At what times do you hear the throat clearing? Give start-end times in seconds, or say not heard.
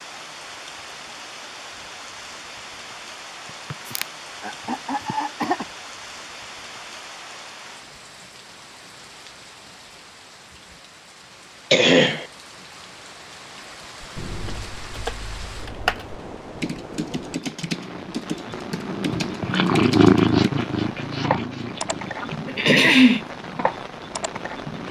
3.7-5.7, 11.7-12.2, 22.4-23.2.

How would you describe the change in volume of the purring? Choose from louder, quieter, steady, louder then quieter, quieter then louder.
louder then quieter.